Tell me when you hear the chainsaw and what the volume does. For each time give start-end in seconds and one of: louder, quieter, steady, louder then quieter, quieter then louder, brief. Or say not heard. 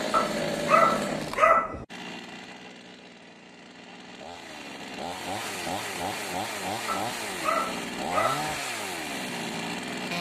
0.0-10.1 quieter then louder.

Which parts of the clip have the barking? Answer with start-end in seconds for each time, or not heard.
0.1-1.9, 6.8-8.6.